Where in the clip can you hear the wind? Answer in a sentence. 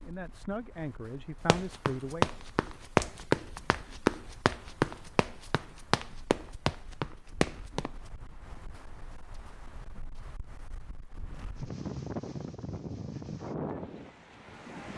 The wind can be heard from 0.0 to 14.9 s.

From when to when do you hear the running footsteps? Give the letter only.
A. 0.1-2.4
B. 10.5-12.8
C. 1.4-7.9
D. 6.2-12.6
C.